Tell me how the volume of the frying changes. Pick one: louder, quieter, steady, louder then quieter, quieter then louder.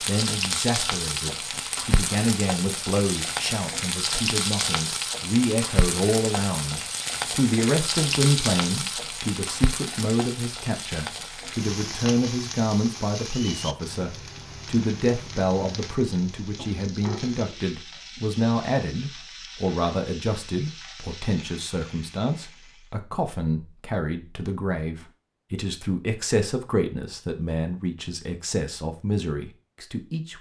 quieter.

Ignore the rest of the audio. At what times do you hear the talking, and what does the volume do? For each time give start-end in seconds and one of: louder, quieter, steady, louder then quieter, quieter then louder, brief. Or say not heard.
0.1-30.3 steady.